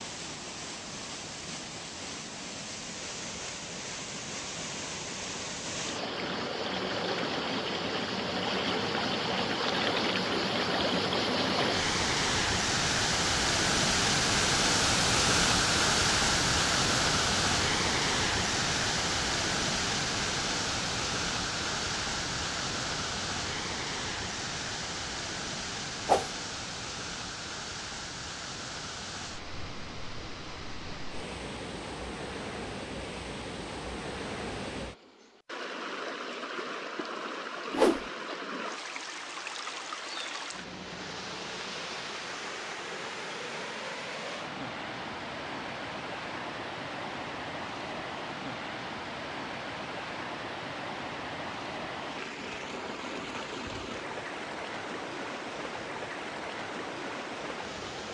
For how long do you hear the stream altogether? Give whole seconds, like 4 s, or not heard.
58 s.